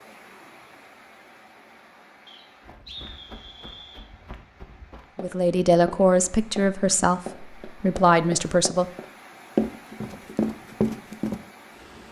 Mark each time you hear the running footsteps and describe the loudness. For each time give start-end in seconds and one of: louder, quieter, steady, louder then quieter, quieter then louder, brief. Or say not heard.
2.6-11.4 louder.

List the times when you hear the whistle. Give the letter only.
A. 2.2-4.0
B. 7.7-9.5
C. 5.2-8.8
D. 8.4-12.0
A.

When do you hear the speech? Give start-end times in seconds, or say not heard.
5.2-8.8.